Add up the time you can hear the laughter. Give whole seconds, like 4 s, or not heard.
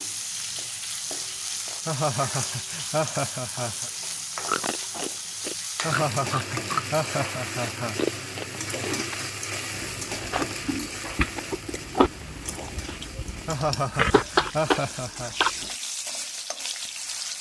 6 s.